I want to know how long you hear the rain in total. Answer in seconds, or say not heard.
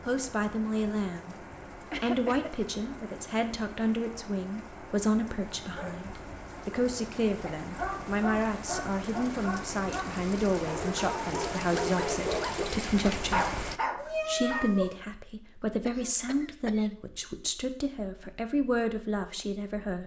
14 s.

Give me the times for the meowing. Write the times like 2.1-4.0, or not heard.
13.9-15.0.